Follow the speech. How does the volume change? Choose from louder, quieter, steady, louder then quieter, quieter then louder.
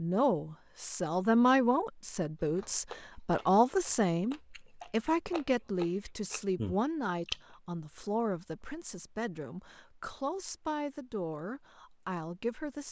quieter.